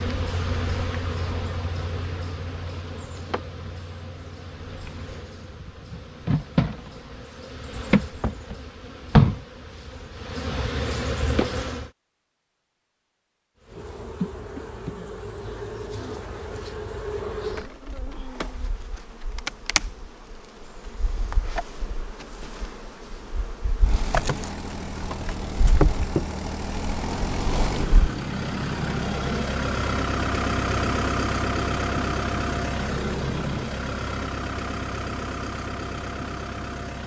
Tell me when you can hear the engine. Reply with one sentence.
You can hear the engine from 23.8 to 37.0 s.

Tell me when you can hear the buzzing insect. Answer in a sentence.
The buzzing insect can be heard from 0.0 to 11.9 s and from 13.7 to 28.1 s.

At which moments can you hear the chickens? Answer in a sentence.
The chickens can't be heard in this clip.